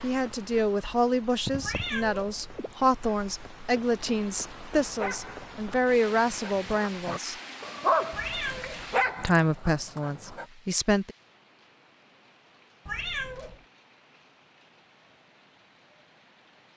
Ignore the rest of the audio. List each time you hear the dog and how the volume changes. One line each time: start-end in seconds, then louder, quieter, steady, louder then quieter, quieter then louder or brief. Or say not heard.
5.0-10.4 louder then quieter.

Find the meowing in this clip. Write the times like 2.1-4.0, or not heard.
1.6-2.8, 8.1-9.5, 12.8-13.7.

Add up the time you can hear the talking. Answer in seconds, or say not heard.
9 s.